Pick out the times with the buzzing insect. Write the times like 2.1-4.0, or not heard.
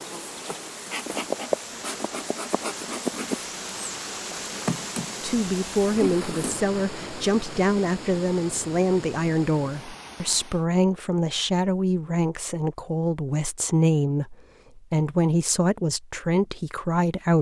0.0-6.5.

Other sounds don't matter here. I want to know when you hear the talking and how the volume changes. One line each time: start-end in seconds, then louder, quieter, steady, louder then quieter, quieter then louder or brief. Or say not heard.
5.2-17.3 steady.